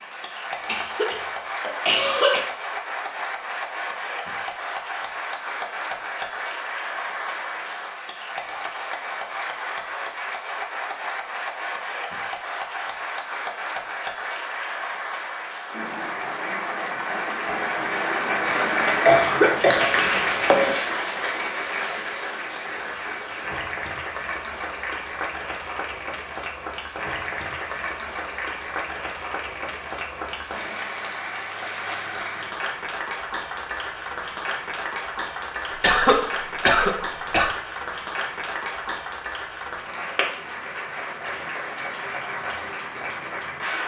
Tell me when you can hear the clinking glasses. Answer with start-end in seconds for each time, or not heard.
19.7-20.8.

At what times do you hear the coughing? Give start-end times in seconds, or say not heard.
0.7-2.4, 19.1-20.1, 35.7-37.5.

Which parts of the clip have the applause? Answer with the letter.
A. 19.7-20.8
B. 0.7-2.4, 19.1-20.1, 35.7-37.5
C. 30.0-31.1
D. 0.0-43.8
D.